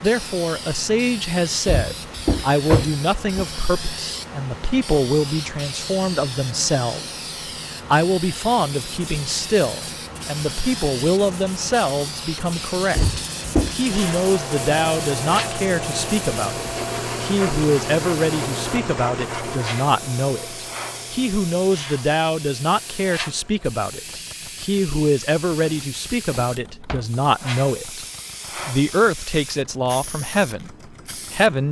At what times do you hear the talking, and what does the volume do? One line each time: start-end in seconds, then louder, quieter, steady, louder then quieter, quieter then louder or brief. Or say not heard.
0.0-28.1 steady
28.6-31.6 brief.